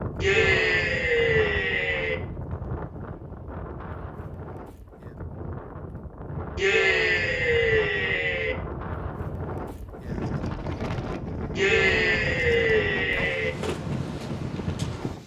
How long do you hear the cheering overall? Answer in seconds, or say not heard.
6 s.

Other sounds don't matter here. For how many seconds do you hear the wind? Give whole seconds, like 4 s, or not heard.
15 s.